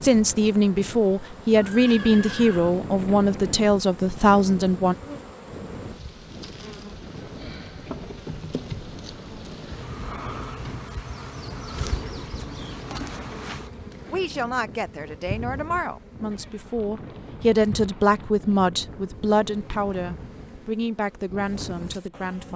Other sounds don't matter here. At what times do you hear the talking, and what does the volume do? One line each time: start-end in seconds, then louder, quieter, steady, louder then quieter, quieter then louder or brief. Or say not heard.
0.0-5.0 steady
14.1-22.5 louder then quieter.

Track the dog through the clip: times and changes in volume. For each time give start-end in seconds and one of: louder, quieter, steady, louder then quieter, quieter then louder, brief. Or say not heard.
not heard.